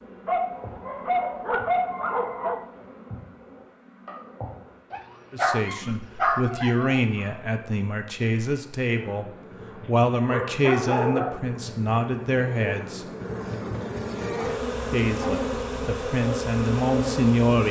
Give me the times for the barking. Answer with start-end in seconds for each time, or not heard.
0.2-2.6, 4.9-7.0, 10.3-11.4, 13.6-15.3.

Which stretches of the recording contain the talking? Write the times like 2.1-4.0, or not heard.
5.3-13.1, 14.9-17.6.